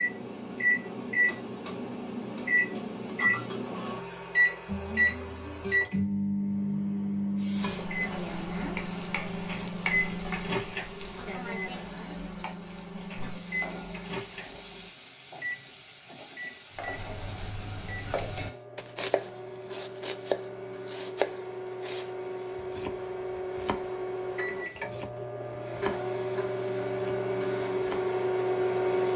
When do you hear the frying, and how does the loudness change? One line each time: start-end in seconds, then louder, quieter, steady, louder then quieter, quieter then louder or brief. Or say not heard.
7.3-18.6 quieter.